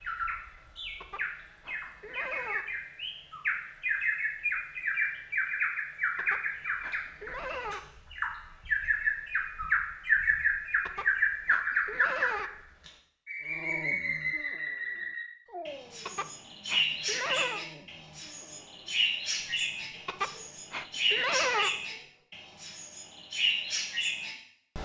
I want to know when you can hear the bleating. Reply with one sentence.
The bleating can be heard from 1.0 to 2.7 s, from 6.2 to 7.9 s, from 10.8 to 12.6 s, from 16.1 to 17.6 s and from 20.1 to 21.8 s.